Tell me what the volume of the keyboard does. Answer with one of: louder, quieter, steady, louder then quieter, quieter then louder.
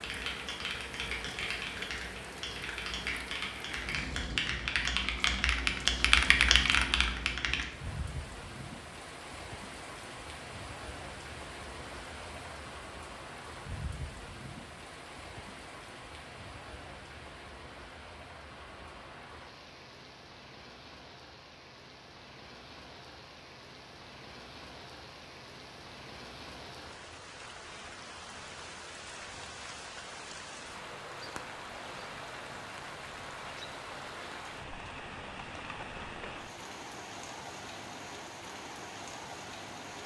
louder.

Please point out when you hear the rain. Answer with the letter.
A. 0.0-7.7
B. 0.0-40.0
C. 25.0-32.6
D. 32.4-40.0
B.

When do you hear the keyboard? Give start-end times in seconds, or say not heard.
0.0-7.7.